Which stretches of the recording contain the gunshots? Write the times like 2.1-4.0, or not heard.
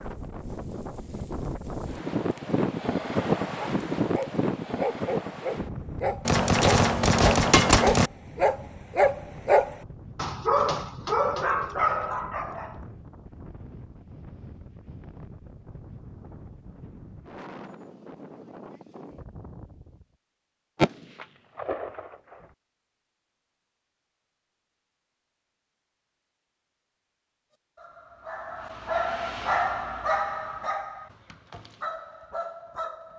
6.2-8.1, 20.8-22.4.